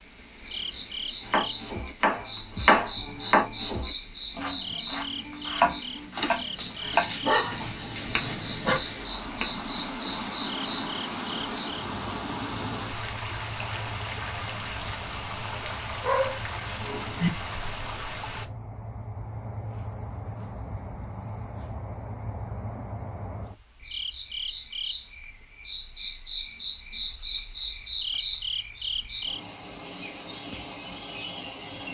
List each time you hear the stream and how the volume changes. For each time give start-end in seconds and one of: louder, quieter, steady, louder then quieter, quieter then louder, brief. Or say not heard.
0.0-18.4 louder.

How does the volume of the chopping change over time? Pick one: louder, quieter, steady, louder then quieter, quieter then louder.
quieter.